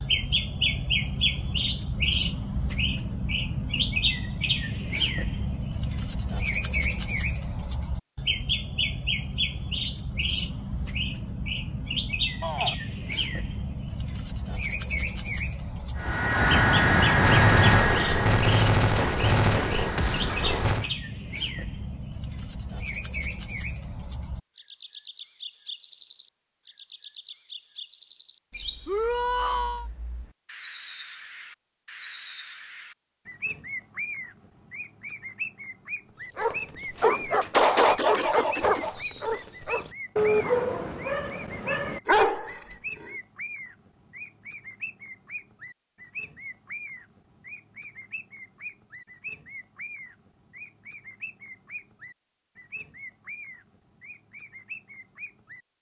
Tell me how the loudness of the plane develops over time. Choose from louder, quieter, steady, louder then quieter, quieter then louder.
quieter.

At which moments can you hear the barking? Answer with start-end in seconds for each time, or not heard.
36.4-43.1.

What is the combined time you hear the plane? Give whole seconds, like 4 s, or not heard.
5 s.